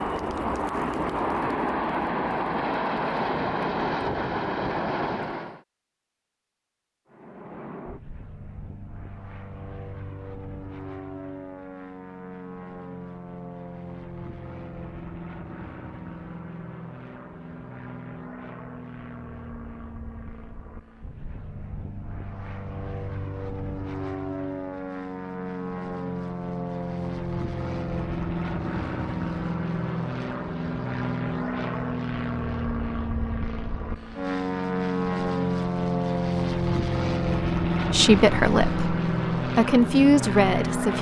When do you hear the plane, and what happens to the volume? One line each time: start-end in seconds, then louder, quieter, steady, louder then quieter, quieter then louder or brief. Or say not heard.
0.0-5.6 steady
7.0-40.9 louder.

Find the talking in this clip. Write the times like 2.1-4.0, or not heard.
37.9-40.9.